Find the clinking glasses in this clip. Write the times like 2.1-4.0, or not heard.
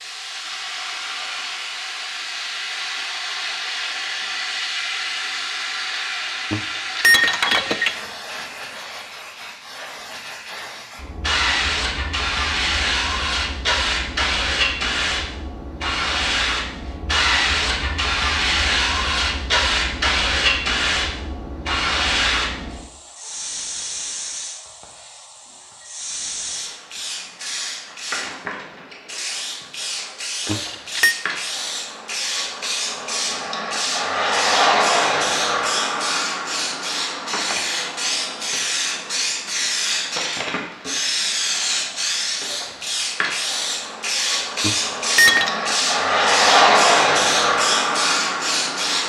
6.5-8.0, 30.4-31.1, 44.6-45.5.